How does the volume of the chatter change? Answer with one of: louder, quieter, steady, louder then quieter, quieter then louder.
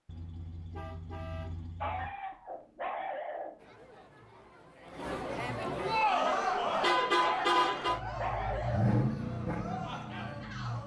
louder then quieter.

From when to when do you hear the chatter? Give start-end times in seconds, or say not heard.
3.5-10.8.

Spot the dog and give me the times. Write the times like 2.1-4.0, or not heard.
1.8-3.6, 7.2-9.0.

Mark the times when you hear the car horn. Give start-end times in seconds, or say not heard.
0.1-2.1, 6.2-8.0.